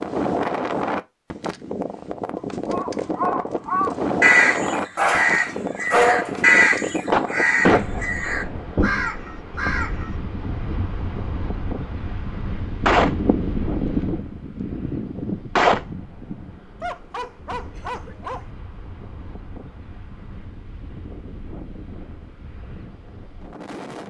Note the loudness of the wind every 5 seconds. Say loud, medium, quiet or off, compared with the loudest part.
loud, medium, medium, quiet, quiet.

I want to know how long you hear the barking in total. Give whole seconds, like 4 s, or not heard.
3 s.